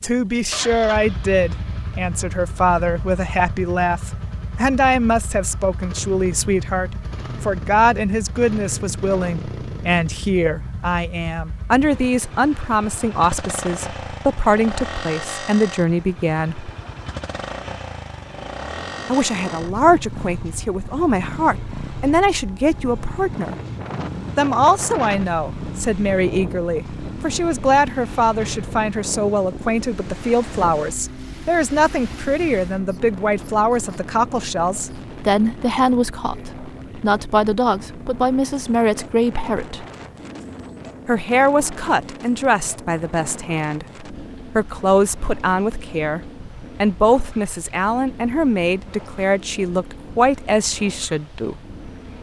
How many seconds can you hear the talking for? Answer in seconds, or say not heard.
47 s.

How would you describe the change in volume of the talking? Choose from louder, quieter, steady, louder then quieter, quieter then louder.
steady.